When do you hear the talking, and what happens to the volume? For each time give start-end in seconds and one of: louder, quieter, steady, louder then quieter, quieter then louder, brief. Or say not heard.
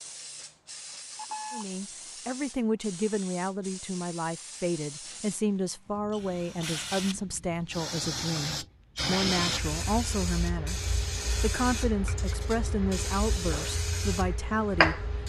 1.5-15.1 steady.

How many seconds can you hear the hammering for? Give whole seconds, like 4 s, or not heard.
not heard.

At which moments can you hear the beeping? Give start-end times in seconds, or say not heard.
1.1-1.6.